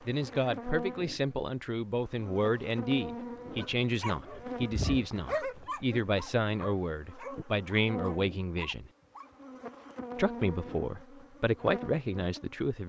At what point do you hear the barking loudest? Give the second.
5 s.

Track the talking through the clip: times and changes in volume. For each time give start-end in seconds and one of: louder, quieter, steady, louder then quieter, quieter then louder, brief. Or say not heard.
0.1-8.9 steady
10.2-12.8 brief.